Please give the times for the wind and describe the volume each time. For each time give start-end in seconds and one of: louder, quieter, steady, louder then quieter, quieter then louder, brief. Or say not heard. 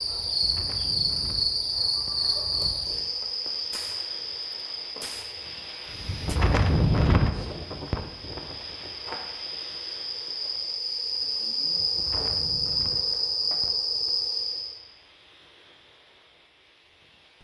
0.0-17.3 louder then quieter.